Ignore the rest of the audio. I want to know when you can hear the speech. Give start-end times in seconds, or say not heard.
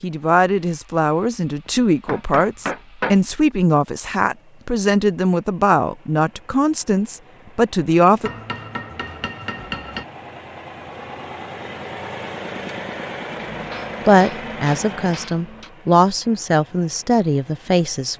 0.0-8.3, 14.1-18.1.